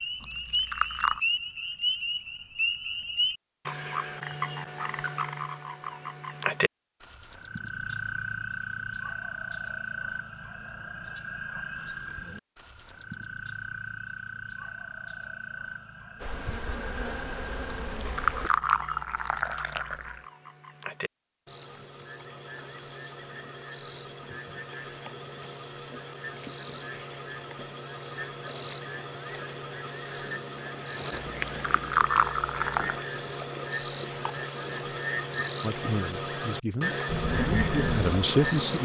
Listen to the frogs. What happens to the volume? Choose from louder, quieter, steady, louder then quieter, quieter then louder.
quieter then louder.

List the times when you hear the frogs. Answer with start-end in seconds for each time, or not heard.
0.0-38.8.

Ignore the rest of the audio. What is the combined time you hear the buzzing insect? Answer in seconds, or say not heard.
4 s.